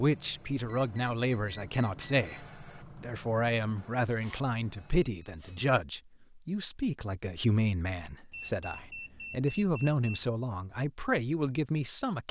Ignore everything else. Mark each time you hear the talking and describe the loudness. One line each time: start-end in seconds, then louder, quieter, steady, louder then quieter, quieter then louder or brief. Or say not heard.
0.0-12.2 steady.